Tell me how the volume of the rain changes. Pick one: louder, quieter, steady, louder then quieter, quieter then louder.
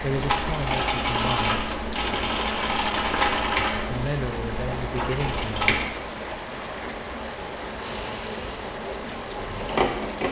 steady.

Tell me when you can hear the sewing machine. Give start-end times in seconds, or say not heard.
0.0-5.9, 7.8-10.2.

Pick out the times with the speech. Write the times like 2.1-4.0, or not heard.
0.0-1.6, 3.9-5.8.